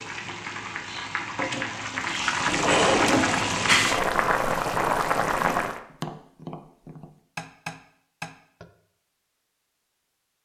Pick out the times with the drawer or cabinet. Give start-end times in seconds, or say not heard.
2.5-3.9.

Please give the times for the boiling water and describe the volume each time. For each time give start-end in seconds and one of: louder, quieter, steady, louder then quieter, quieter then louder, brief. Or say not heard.
0.0-5.8 louder.